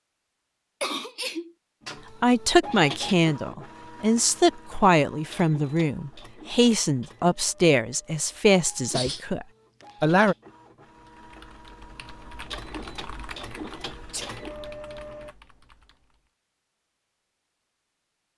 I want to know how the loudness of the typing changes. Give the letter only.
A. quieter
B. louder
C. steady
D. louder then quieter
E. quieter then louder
D.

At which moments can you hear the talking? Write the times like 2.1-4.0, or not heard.
2.2-10.3.